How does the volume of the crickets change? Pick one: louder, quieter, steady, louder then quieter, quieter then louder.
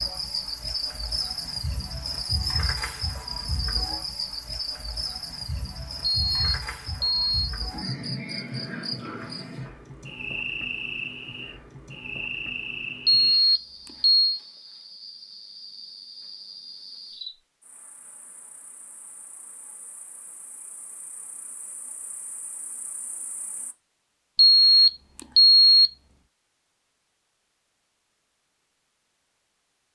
quieter.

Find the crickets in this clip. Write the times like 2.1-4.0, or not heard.
0.0-23.8.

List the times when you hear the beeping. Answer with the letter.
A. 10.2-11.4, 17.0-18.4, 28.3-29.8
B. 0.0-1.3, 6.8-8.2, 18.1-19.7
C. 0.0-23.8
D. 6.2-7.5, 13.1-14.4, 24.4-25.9
D.